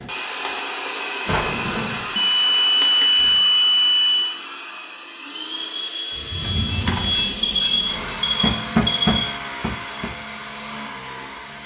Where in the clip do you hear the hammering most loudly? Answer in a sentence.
The volume of the hammering peaks at 9 seconds.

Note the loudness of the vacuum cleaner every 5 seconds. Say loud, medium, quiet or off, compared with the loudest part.
loud, loud, medium.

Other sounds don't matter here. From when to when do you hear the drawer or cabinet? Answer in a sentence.
You can hear the drawer or cabinet from 1.2 to 2.1 s and from 6.2 to 7.2 s.